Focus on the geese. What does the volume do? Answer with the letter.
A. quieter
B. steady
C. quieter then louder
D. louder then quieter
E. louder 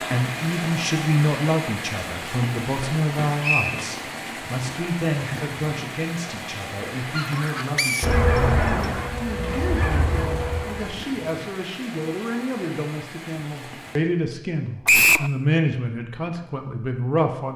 D.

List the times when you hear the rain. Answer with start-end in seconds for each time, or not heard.
0.0-14.0.